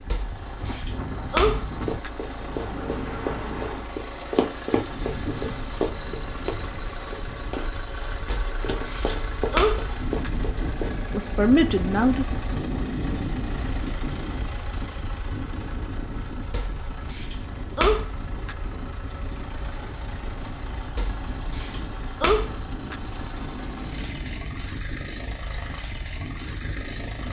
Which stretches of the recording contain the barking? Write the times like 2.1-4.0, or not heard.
0.1-2.1, 8.3-10.3, 16.5-18.6, 20.9-22.9.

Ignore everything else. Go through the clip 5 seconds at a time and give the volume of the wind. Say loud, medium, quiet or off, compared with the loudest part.
loud, medium, loud, medium, medium, medium.